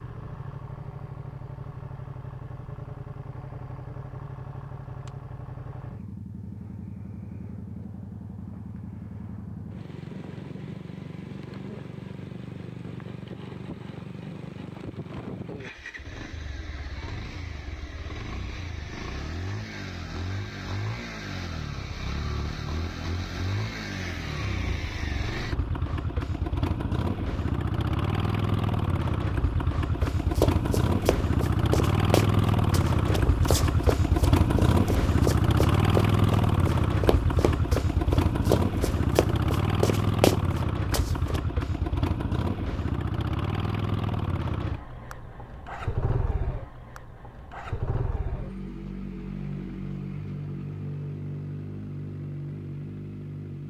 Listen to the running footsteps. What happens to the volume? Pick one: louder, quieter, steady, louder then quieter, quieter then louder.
quieter then louder.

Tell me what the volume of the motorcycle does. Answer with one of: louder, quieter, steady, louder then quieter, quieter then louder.
louder then quieter.